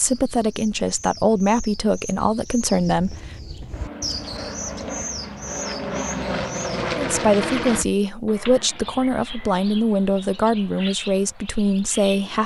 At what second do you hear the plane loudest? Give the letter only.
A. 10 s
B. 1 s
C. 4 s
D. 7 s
D.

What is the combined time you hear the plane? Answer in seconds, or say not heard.
4 s.